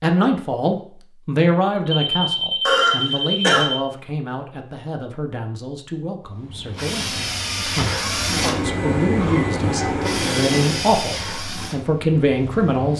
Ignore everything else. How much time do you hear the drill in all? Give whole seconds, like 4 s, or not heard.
7 s.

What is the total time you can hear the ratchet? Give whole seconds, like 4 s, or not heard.
not heard.